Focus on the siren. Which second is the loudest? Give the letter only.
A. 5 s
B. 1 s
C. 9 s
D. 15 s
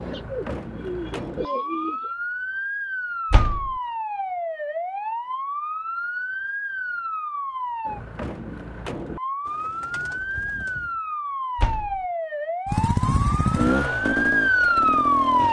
D.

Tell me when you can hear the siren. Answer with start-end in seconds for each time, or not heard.
0.0-15.4.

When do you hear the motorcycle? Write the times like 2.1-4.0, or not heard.
12.7-15.4.